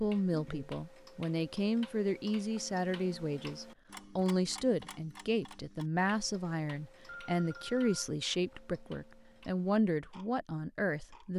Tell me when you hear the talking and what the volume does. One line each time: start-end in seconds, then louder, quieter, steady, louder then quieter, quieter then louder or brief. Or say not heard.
0.0-11.3 steady.